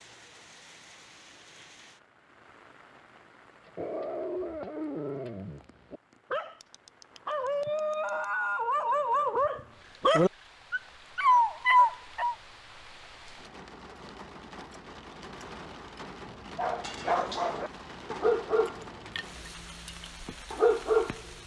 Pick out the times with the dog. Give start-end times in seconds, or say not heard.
3.6-12.3, 16.6-21.2.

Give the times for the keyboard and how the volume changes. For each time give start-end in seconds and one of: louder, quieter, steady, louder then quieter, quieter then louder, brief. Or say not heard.
not heard.